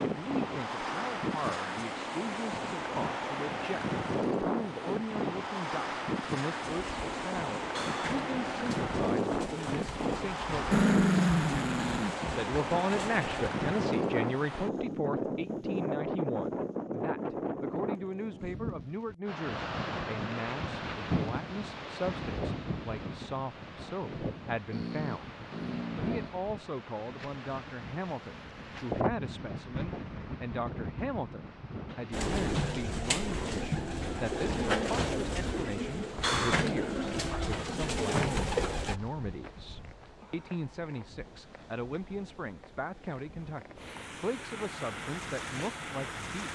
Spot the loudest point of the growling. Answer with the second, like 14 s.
11 s.